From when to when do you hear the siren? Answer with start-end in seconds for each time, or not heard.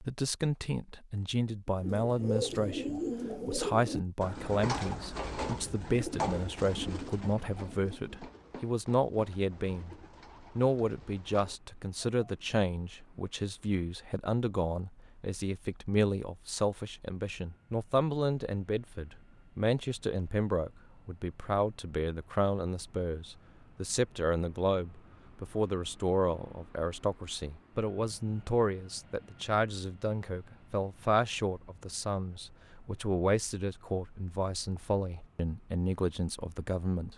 not heard.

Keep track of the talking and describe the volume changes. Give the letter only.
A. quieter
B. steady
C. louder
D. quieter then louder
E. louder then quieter
B.